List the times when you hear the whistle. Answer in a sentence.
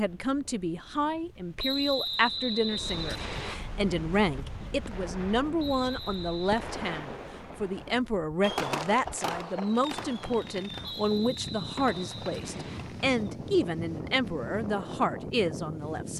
The whistle can be heard from 1.6 to 3.5 s, from 5.5 to 6.6 s and from 10.9 to 12.8 s.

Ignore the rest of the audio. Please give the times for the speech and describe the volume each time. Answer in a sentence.
The speech can be heard from 0.0 to 16.1 s, at a steady volume.